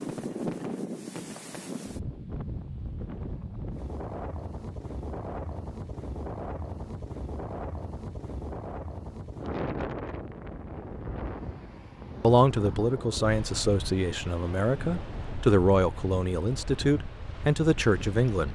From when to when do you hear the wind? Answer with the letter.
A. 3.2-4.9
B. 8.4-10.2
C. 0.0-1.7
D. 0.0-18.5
D.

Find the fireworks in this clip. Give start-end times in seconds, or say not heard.
0.0-1.7.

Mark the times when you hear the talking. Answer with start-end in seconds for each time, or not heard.
12.2-18.5.